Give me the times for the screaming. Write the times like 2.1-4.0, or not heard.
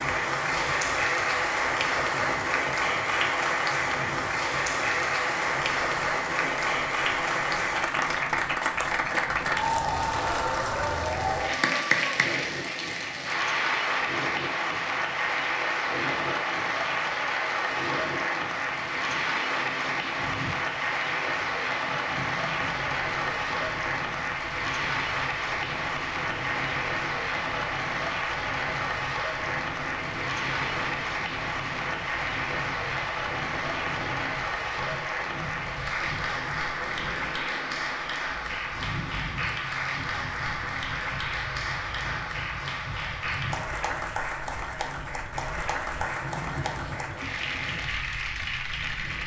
9.8-11.1.